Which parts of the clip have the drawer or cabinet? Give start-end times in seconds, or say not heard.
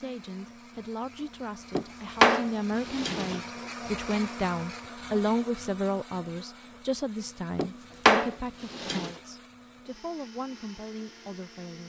1.8-3.4, 7.5-9.1.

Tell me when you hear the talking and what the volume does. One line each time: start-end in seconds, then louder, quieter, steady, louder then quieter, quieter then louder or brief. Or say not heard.
0.0-11.8 louder then quieter.